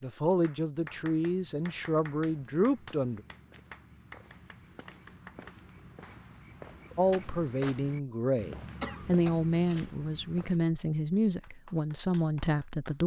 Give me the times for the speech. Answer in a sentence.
The speech can be heard from 0.0 to 3.2 s and from 7.0 to 13.0 s.